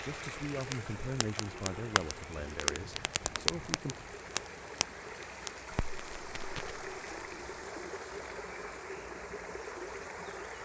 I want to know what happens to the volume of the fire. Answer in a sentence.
The loudness of the fire goes up, then down.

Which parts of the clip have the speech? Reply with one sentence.
The speech can be heard from 0.0 to 4.0 s.